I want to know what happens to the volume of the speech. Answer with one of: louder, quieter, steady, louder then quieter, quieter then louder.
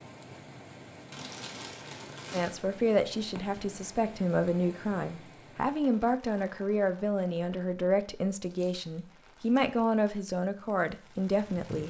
steady.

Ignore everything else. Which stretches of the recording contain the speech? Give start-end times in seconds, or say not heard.
2.3-11.8.